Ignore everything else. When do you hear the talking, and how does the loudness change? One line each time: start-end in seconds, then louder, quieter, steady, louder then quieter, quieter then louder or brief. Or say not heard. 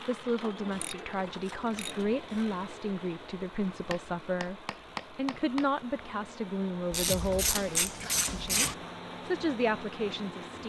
0.1-10.6 steady.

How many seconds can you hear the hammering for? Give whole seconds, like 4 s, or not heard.
2 s.